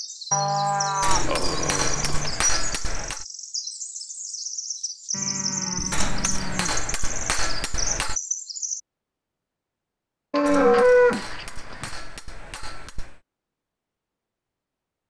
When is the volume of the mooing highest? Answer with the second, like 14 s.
11 s.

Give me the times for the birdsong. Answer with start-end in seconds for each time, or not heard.
0.0-8.8.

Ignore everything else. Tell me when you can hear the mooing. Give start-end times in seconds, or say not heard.
0.3-2.3, 5.1-6.8, 10.3-11.9.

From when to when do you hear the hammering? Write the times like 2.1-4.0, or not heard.
1.0-3.2, 5.9-8.2, 10.4-13.2.